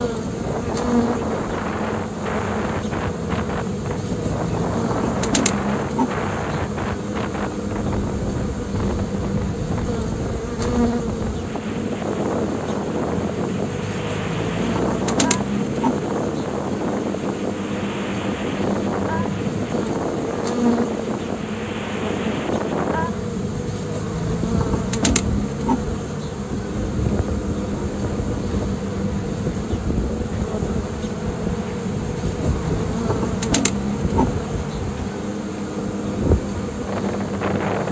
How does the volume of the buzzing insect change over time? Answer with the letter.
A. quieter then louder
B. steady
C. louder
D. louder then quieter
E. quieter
B.